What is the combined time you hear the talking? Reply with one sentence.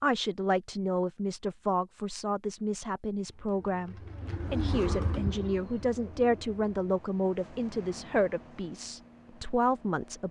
The talking can be heard for 10 seconds in total.